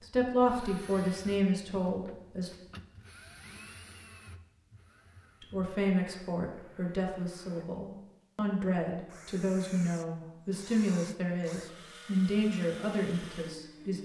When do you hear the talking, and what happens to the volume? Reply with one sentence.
You can hear the talking briefly from 0.0 to 2.5 s; and from 5.4 to 13.9 s, at a steady volume.